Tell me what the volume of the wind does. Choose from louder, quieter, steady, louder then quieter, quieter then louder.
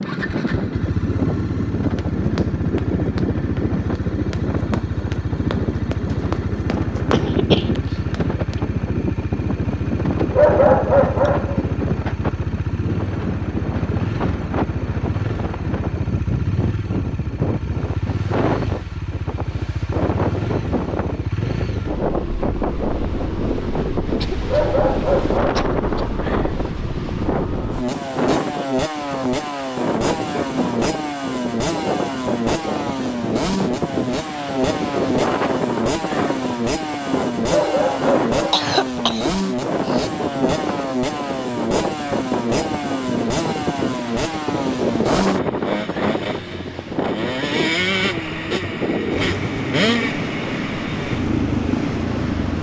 steady.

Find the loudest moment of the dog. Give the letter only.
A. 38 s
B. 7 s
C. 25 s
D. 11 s
D.